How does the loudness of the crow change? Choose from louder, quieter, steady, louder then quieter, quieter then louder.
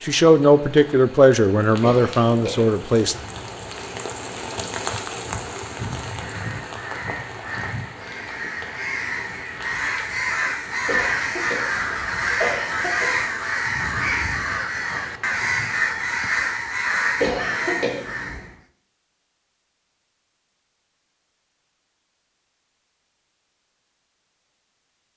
louder.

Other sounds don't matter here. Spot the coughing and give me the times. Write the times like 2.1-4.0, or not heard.
1.8-2.8, 10.8-13.3, 17.1-18.4.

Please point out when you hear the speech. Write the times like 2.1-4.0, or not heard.
0.0-3.1.